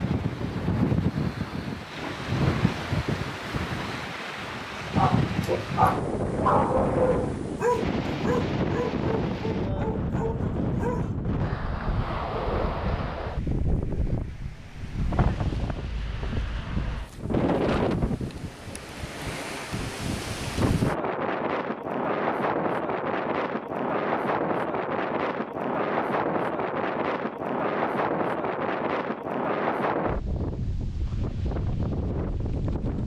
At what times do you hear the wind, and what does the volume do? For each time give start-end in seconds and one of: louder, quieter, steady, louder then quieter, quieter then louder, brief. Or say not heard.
0.0-33.0 steady.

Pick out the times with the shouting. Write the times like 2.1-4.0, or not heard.
not heard.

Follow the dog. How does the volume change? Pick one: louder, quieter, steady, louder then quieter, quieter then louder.
quieter.